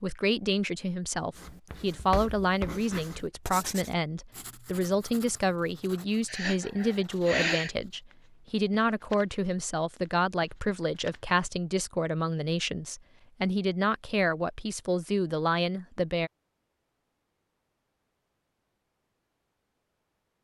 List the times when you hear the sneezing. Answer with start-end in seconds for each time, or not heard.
6.2-7.7.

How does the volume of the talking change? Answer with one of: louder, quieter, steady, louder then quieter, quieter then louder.
steady.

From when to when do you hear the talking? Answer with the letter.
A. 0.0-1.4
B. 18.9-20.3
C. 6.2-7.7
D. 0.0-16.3
D.